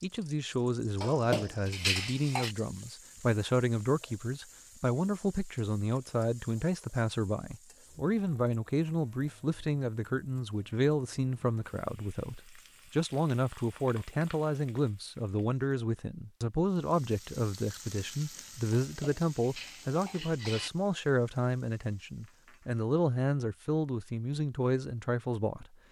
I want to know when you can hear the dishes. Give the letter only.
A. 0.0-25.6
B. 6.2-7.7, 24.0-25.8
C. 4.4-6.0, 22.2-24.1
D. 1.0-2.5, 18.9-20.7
D.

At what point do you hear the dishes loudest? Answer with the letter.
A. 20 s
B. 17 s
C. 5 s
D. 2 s
D.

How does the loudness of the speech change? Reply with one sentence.
The loudness of the speech stays about the same.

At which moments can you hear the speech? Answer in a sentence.
The speech can be heard from 0.0 to 25.6 s.